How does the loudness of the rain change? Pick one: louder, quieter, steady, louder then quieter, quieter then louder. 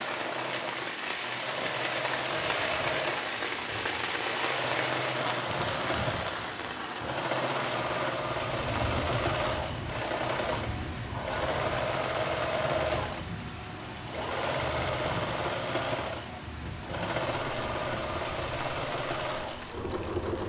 quieter.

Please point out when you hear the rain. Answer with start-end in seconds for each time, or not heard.
0.0-20.4.